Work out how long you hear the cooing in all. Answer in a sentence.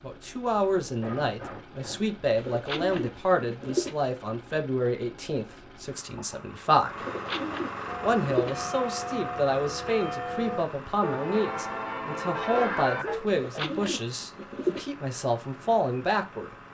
You can hear the cooing for 5 seconds altogether.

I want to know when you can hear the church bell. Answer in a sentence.
The church bell can be heard from 7.8 to 13.2 s.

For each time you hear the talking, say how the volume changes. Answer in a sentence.
The talking can be heard from 0.0 to 7.0 s, getting quieter; and from 8.0 to 16.6 s, at a steady volume.